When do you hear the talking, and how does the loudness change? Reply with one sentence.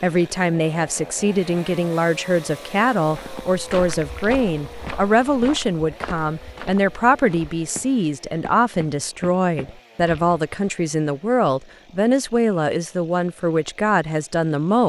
The talking can be heard from 0.0 to 14.8 s, at a steady volume.